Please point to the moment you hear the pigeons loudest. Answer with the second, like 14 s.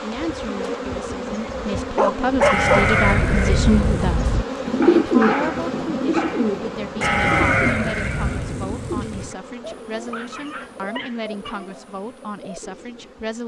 5 s.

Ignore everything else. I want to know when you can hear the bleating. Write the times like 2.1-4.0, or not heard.
2.4-4.0, 7.0-9.3.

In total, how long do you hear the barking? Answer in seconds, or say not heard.
4 s.